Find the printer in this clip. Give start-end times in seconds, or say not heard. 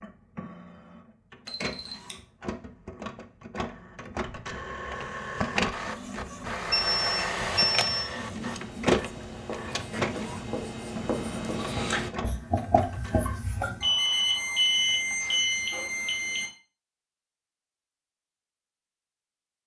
0.0-13.4.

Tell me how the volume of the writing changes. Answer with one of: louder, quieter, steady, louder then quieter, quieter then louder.
louder.